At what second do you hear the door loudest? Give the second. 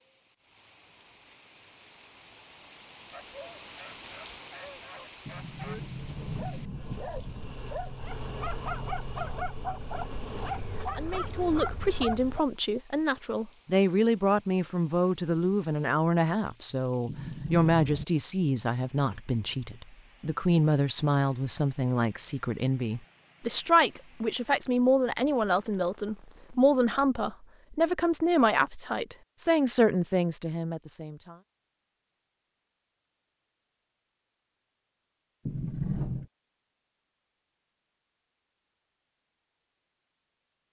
36 s.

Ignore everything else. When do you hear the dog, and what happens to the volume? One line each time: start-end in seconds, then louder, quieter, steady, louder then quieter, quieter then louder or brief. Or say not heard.
3.1-12.4 louder.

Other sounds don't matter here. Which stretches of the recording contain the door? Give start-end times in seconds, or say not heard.
5.2-7.6, 17.1-18.1, 35.5-36.2.